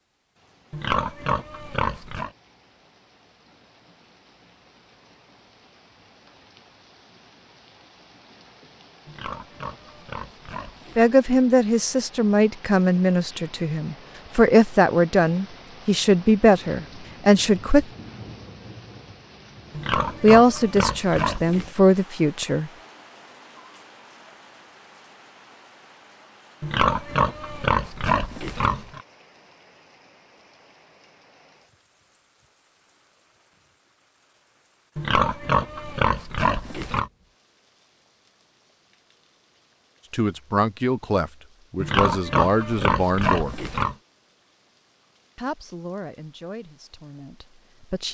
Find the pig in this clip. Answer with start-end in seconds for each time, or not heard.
0.7-2.3, 9.1-11.1, 19.7-21.7, 26.6-29.0, 35.0-37.1, 41.8-44.0.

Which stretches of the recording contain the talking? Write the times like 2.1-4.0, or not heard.
10.9-17.9, 20.2-22.7, 40.1-43.5, 45.4-48.0.